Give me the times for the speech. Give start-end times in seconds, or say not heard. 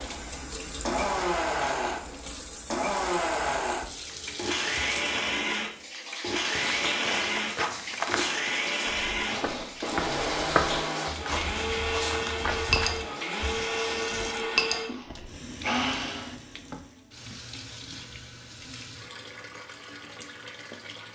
not heard.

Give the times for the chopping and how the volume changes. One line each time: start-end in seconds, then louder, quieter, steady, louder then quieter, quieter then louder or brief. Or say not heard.
not heard.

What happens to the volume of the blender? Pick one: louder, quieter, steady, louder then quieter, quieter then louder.
steady.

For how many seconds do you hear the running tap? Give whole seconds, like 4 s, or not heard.
21 s.